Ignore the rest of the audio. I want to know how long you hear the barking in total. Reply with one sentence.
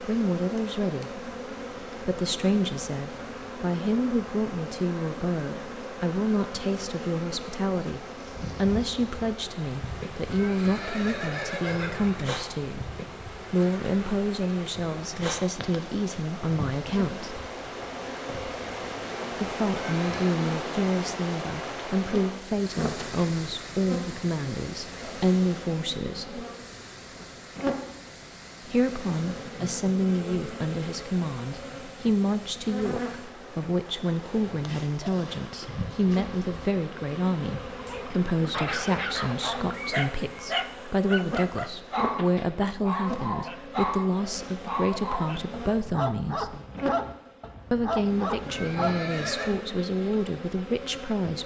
You can hear the barking for 11 seconds altogether.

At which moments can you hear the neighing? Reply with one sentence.
You can hear the neighing from 10.3 to 12.2 s, from 19.8 to 20.4 s and from 48.5 to 49.5 s.